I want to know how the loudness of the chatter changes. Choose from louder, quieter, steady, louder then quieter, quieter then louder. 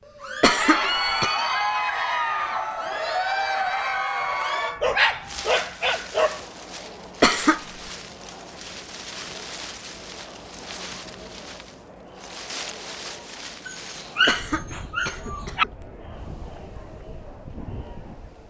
quieter.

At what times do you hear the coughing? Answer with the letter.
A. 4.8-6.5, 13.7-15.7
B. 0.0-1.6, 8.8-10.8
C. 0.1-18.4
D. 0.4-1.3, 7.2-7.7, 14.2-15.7
D.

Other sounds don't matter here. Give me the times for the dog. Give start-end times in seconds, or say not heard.
4.8-6.5, 13.7-15.7.